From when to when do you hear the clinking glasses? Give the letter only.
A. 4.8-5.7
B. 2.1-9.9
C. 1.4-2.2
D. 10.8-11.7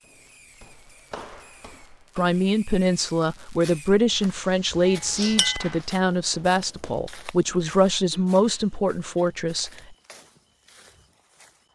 A.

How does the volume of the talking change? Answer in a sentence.
The loudness of the talking stays about the same.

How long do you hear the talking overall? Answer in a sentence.
You can hear the talking for 8 seconds altogether.